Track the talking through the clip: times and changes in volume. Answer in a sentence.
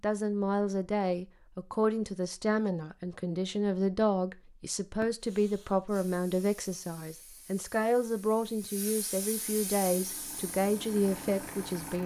The talking can be heard from 0.0 to 12.0 s, at a steady volume.